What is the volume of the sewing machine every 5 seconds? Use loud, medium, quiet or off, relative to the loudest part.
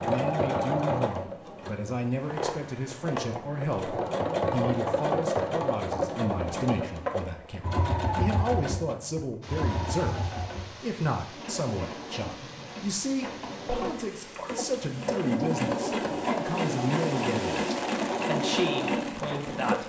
loud, loud, medium, loud.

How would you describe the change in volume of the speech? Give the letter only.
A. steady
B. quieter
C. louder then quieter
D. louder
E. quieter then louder
A.